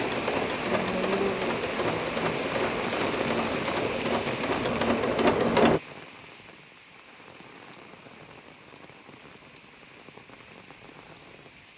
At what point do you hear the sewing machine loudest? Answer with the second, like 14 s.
5 s.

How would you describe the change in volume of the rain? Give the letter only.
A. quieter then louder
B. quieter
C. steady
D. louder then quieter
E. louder
B.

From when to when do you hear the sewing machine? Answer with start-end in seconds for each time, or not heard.
0.0-5.8.